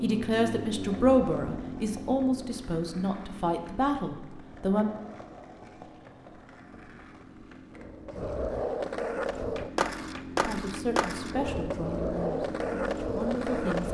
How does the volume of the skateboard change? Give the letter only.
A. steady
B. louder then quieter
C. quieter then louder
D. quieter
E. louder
E.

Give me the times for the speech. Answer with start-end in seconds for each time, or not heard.
0.0-4.9, 10.4-13.8.